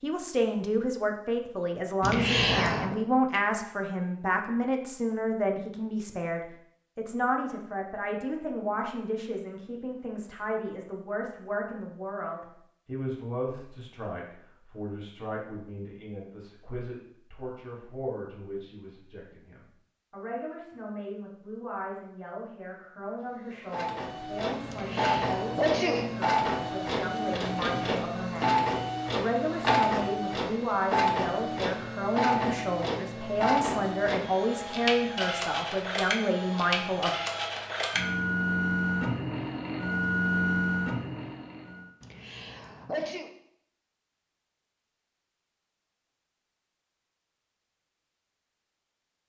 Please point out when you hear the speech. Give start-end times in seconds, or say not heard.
0.0-37.1.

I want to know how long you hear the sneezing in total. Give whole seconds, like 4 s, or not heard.
4 s.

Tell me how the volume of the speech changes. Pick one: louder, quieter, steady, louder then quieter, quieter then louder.
quieter then louder.